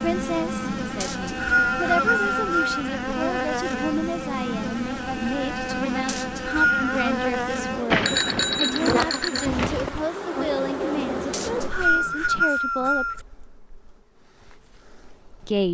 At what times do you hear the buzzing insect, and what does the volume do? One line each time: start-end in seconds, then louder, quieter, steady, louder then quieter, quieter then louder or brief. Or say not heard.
0.0-15.6 quieter.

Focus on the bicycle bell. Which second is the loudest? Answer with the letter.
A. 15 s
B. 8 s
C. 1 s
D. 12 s
B.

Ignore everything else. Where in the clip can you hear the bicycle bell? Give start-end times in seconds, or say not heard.
7.9-9.9.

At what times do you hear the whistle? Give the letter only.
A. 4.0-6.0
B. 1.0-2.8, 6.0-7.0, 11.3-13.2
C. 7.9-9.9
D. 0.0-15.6
B.